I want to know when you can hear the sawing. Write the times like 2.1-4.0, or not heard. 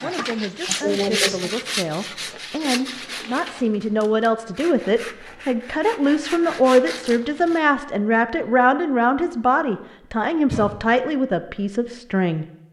0.0-7.6.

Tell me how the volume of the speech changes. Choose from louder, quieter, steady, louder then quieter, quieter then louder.
louder.